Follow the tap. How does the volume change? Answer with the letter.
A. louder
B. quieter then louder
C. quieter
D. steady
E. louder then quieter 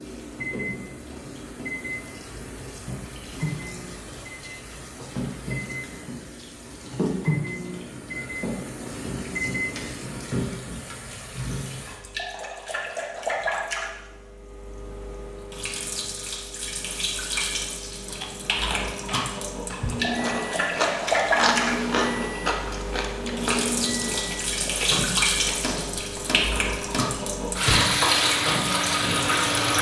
A.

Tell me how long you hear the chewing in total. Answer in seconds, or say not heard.
8 s.